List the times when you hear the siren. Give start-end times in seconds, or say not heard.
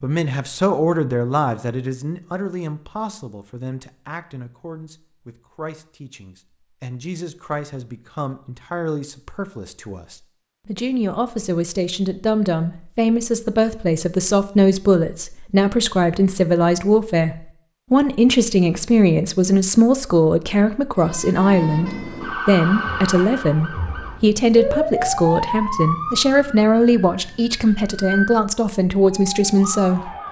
20.9-30.2.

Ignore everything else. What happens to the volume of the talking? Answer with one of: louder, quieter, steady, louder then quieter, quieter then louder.
louder.